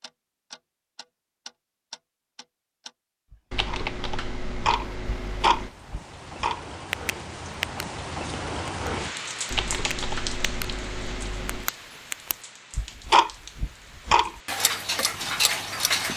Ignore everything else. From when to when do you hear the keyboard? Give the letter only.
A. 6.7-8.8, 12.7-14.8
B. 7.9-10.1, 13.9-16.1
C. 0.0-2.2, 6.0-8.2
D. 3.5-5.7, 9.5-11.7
D.